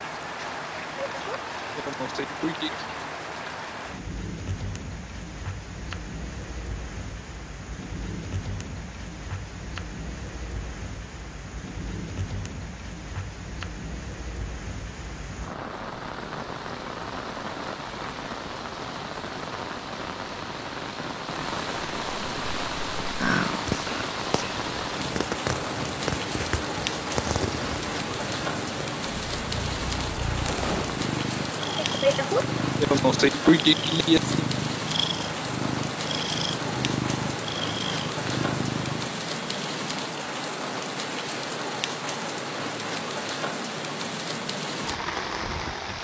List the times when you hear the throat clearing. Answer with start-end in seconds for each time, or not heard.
0.9-2.7, 31.8-34.4.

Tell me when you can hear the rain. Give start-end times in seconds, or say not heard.
0.0-45.9.